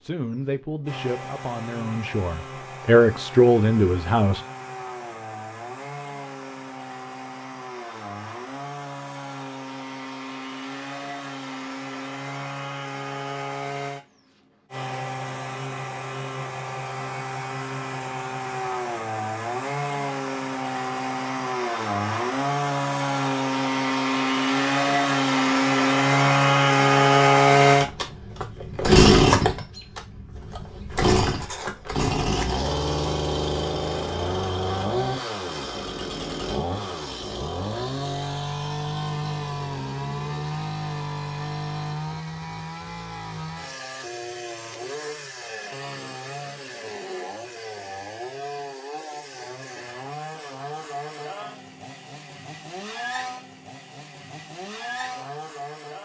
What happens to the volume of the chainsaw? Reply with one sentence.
The loudness of the chainsaw goes up, then down.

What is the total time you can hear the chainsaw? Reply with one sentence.
You can hear the chainsaw for 56 seconds altogether.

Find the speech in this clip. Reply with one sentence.
The speech can be heard from 0.0 to 4.4 s.